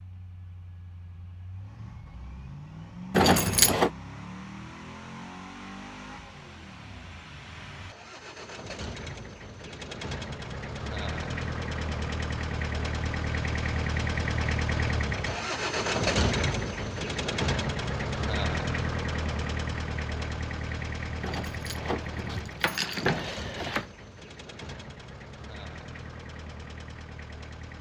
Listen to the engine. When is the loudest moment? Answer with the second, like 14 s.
16 s.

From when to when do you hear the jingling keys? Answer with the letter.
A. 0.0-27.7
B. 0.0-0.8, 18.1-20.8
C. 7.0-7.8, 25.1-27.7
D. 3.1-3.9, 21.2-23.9
D.